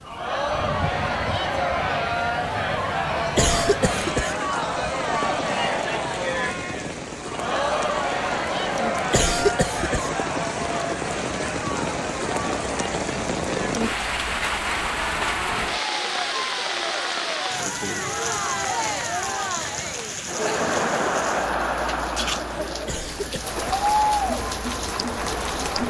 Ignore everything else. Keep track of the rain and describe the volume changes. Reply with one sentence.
The loudness of the rain goes up, then down.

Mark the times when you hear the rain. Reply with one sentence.
The rain can be heard from 0.0 to 25.8 s.